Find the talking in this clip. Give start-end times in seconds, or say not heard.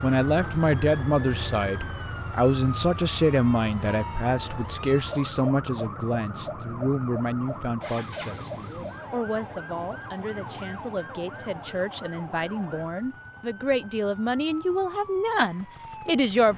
0.0-16.5.